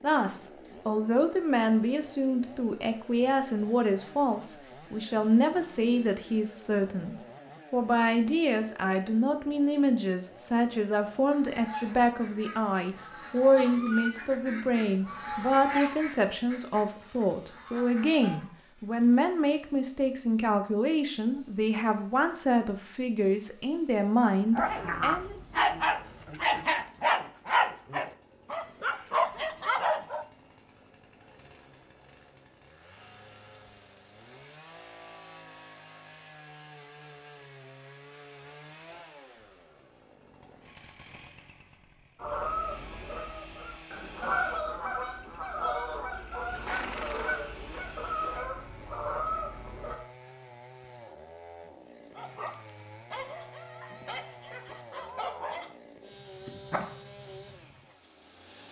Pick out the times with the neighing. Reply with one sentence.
You can hear the neighing from 46.5 to 47.9 s.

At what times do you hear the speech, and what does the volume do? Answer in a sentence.
You can hear the speech from 0.0 to 25.4 s, at a steady volume.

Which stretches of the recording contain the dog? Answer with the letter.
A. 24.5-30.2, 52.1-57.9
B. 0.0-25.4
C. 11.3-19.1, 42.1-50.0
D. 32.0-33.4
A.